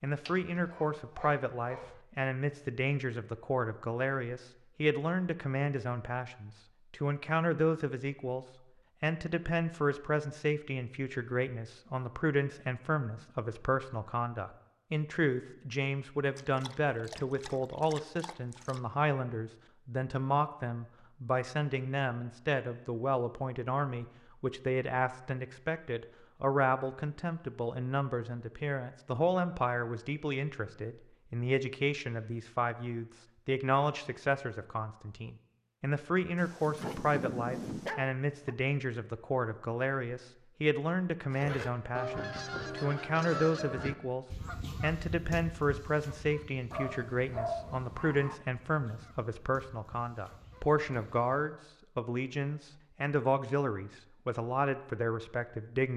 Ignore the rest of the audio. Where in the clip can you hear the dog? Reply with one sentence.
You can hear the dog from 0.1 to 2.0 s, from 16.4 to 18.8 s, from 36.4 to 38.5 s and from 46.7 to 48.4 s.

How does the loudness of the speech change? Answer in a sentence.
The volume of the speech stays about the same.